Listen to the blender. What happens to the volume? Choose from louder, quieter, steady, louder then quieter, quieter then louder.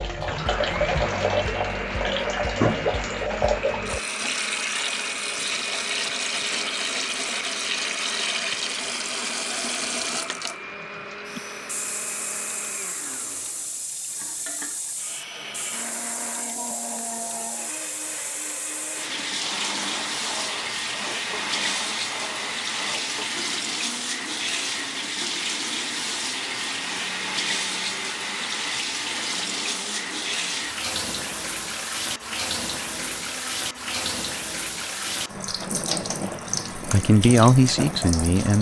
quieter.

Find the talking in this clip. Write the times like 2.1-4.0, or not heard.
36.8-38.5.